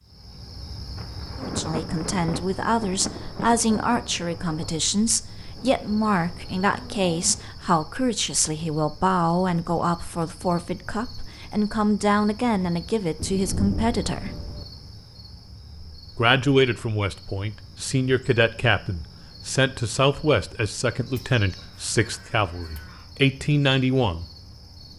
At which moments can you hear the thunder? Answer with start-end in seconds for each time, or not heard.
0.9-4.8, 13.2-14.7.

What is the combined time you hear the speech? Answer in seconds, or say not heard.
21 s.